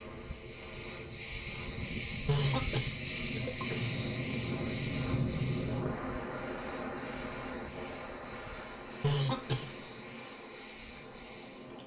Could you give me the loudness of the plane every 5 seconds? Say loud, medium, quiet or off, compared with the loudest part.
loud, loud, medium.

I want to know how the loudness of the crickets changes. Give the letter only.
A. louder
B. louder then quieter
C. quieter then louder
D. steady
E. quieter
E.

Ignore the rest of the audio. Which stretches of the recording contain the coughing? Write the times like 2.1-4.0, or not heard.
2.2-3.8, 9.0-9.8.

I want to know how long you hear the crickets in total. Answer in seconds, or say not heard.
12 s.